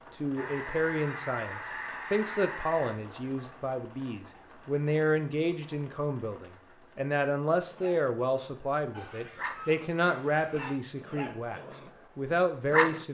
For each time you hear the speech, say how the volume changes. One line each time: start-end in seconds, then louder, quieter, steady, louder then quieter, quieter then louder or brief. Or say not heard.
0.2-13.0 steady.